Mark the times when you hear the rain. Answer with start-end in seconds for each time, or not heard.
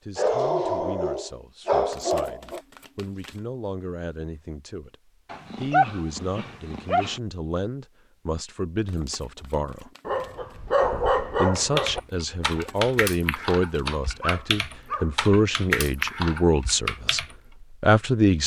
not heard.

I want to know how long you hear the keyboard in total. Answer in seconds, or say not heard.
6 s.